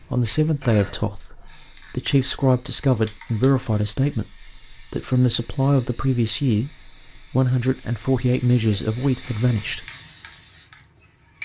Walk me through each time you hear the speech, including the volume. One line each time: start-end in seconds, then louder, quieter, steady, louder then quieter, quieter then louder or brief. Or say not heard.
0.1-9.8 steady.